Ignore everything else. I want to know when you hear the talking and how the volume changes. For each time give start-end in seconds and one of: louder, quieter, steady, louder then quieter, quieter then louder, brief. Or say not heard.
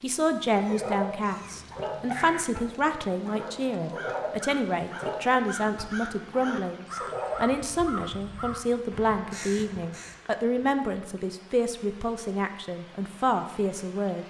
0.0-14.2 steady.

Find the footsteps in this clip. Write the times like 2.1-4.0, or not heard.
not heard.